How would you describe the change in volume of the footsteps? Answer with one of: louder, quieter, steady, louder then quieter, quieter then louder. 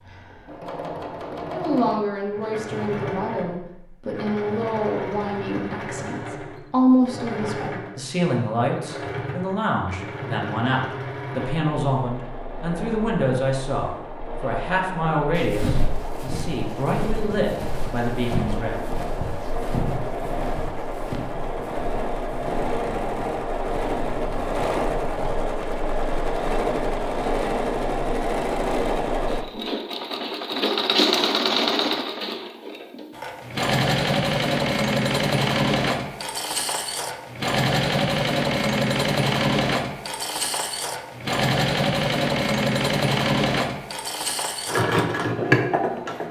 quieter.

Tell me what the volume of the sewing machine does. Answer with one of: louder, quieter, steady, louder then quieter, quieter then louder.
louder.